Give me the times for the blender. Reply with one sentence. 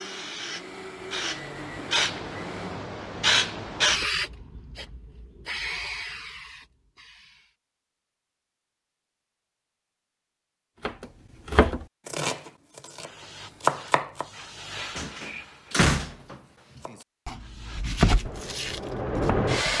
The blender can be heard from 0.0 to 2.8 s.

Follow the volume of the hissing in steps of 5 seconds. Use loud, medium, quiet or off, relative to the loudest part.
loud, medium, quiet, loud.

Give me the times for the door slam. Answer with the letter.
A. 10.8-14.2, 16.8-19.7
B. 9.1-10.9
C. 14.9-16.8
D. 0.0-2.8
C.